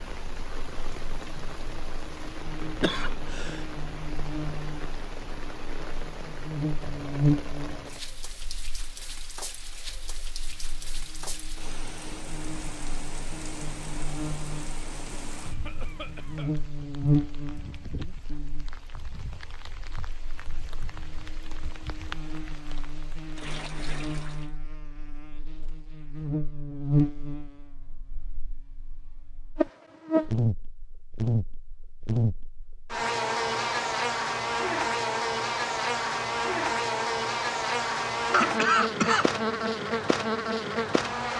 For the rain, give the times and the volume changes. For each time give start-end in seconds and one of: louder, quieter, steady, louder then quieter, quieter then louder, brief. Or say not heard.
0.0-24.5 steady.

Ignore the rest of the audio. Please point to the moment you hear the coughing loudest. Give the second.
39 s.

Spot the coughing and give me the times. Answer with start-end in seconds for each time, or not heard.
2.8-3.6, 15.4-16.6, 38.3-39.7.